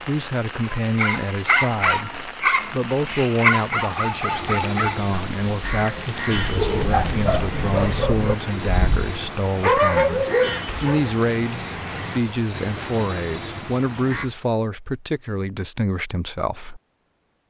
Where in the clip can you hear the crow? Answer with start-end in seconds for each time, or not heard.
4.3-14.3.